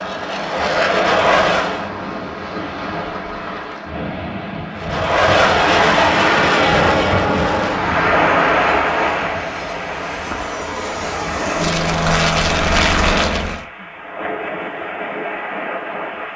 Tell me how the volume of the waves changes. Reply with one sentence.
The loudness of the waves goes up, then down.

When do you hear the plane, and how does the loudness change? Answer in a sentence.
The plane can be heard briefly from 0.0 to 1.9 s; and from 4.8 to 13.7 s, getting quieter then louder.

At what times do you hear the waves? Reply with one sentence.
You can hear the waves from 0.0 to 16.3 s.